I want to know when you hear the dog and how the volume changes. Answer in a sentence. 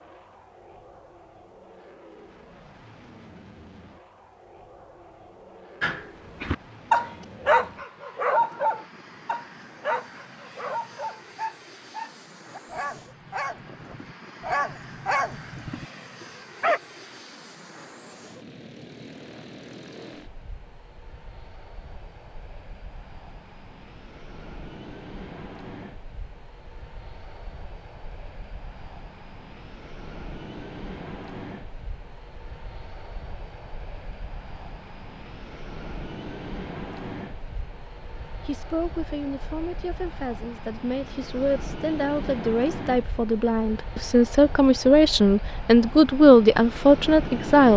The dog can be heard from 5.8 to 16.8 s, getting quieter then louder.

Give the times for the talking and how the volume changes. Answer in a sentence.
You can hear the talking from 38.4 to 47.7 s, getting louder.